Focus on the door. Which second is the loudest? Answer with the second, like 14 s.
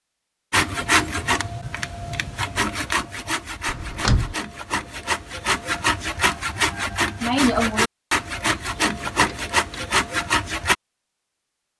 4 s.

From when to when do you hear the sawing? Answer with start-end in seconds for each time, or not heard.
0.5-10.8.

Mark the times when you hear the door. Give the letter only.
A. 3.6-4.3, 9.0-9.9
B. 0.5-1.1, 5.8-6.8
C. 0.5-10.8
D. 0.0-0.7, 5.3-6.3
A.